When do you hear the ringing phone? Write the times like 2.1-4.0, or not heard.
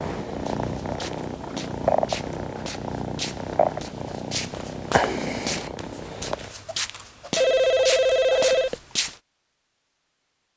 7.3-8.8.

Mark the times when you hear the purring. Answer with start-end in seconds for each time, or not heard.
0.0-6.5.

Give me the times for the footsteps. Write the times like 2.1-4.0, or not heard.
0.5-9.2.